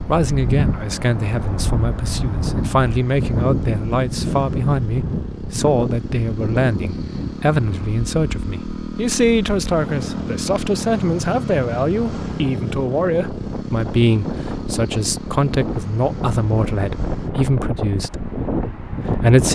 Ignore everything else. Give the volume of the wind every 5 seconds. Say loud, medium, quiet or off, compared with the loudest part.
loud, loud, medium, loud.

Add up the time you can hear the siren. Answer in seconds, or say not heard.
not heard.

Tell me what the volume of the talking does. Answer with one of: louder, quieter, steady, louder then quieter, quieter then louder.
steady.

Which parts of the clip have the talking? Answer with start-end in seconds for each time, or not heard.
0.1-19.5.